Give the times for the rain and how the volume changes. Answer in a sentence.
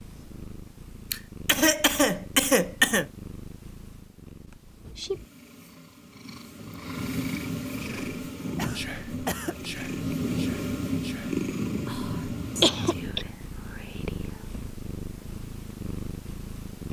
The rain can't be heard in this clip.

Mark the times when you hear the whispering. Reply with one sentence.
The whispering can be heard from 7.8 to 14.4 s.